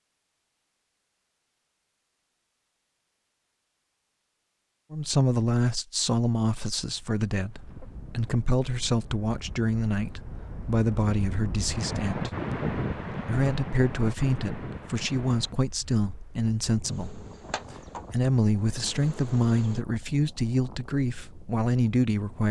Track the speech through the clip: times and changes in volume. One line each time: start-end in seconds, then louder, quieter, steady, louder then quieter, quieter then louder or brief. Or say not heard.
4.9-22.4 steady.